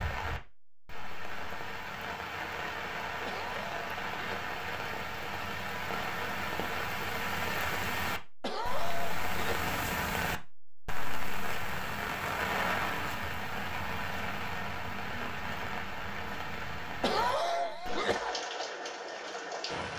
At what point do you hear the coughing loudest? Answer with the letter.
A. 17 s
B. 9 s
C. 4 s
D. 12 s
A.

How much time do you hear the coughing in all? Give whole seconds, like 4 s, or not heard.
4 s.